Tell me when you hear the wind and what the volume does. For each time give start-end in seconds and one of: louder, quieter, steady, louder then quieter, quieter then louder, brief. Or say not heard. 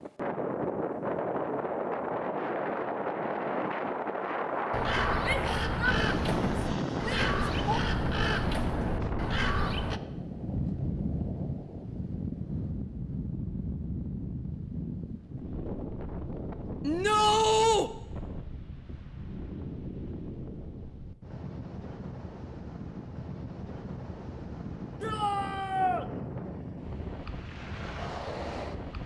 0.0-29.0 quieter.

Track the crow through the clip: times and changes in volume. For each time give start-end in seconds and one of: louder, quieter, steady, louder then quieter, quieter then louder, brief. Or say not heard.
4.7-10.0 steady.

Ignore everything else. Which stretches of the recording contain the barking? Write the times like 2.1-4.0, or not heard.
not heard.